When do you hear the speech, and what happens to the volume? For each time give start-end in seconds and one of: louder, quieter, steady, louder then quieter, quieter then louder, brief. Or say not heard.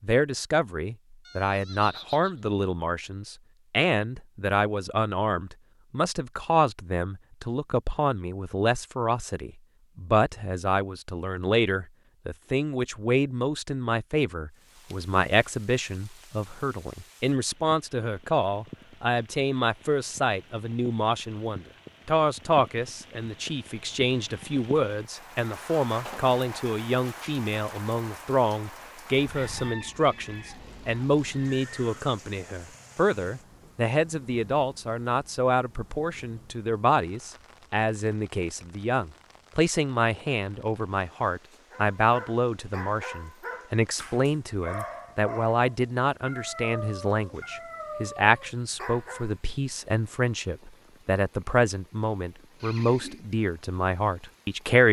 0.0-54.8 steady.